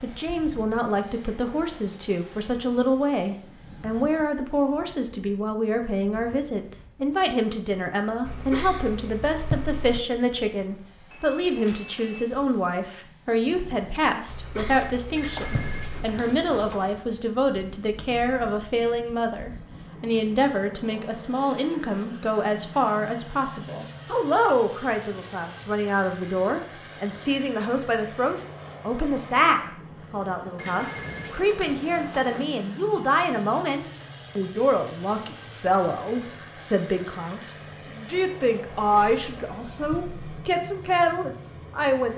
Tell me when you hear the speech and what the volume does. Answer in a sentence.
You can hear the speech from 0.0 to 42.1 s, at a steady volume.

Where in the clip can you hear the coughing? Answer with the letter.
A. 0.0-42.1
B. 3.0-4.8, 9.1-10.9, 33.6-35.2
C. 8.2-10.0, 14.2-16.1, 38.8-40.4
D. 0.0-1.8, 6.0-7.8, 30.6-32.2
C.